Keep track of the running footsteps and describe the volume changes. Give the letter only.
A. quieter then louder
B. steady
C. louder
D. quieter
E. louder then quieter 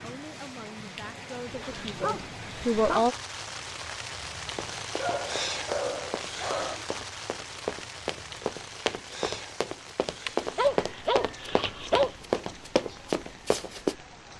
C.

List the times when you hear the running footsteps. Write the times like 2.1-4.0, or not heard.
4.5-13.9.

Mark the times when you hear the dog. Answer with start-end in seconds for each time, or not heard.
1.5-3.1, 5.0-6.8, 10.2-12.1.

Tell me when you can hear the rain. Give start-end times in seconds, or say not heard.
0.0-14.3.